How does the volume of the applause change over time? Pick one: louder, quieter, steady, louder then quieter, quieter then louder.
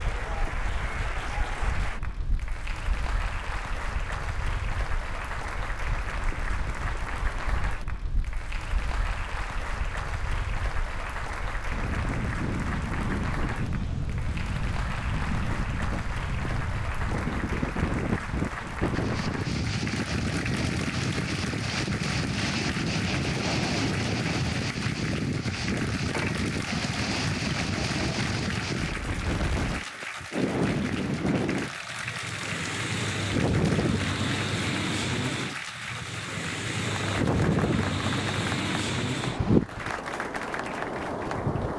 steady.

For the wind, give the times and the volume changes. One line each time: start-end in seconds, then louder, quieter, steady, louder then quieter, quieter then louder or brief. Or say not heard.
0.0-41.7 louder.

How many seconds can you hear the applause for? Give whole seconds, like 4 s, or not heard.
42 s.